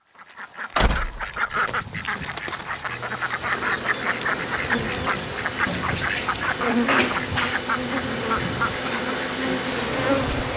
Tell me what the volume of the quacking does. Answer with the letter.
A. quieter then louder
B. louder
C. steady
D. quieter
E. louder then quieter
C.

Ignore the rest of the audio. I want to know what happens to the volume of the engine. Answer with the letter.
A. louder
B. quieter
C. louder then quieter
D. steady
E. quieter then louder
A.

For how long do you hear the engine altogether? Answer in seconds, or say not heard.
8 s.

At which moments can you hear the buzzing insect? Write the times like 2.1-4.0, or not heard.
3.5-10.5.